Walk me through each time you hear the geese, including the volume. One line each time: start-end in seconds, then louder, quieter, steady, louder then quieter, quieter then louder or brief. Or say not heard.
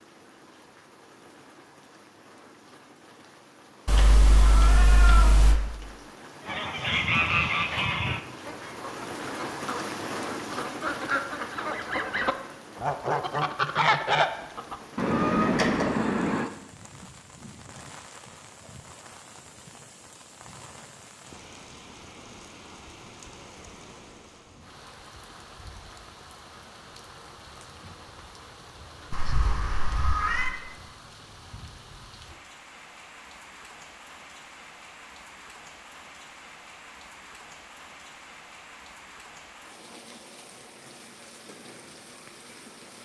6.5-16.5 quieter then louder.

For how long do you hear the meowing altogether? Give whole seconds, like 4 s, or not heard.
4 s.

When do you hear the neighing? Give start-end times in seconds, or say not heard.
not heard.